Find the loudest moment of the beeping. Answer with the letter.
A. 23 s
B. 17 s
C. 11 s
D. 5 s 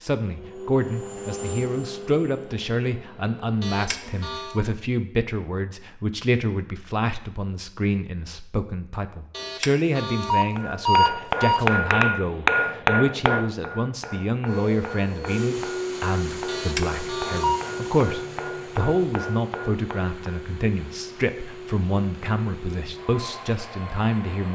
C.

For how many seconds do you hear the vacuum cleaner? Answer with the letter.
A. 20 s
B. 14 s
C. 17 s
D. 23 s
B.